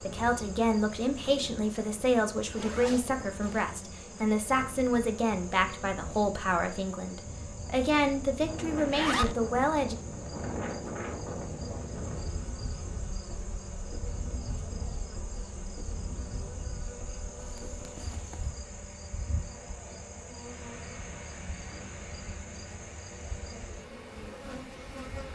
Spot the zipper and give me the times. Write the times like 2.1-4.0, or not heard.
2.5-3.6, 8.8-9.3, 17.4-18.6.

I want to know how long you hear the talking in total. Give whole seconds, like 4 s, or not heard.
10 s.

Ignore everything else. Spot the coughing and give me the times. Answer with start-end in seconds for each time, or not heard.
not heard.